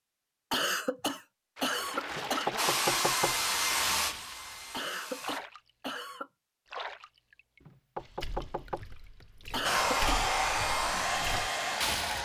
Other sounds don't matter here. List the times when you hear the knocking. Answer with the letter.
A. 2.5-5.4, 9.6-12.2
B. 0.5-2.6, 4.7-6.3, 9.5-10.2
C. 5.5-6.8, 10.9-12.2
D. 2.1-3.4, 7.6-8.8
D.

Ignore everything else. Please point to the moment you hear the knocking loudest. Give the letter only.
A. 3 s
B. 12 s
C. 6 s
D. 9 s
A.